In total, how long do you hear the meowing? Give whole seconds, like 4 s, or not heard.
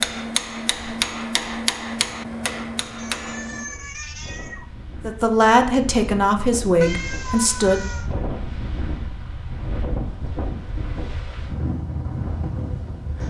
3 s.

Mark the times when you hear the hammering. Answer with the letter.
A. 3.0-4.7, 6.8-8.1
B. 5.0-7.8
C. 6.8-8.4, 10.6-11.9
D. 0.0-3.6
D.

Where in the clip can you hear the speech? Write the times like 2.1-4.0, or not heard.
5.0-7.8.